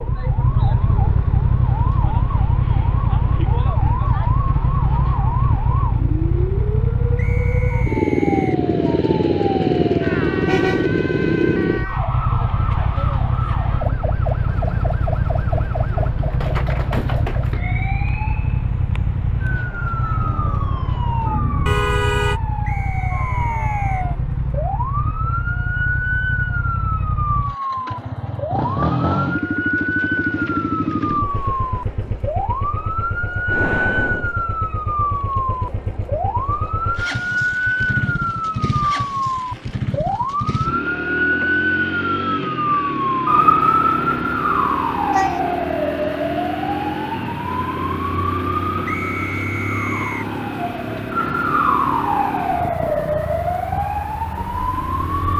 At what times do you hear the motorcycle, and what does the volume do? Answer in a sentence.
The motorcycle can be heard from 0.0 to 55.3 s, getting quieter.